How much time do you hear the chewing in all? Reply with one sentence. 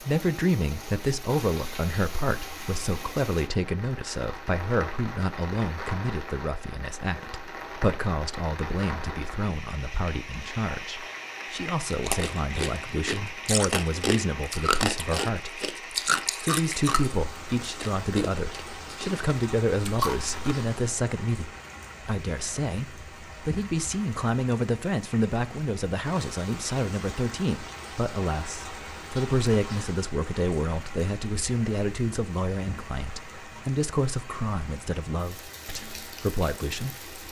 The chewing can be heard for 9 seconds in total.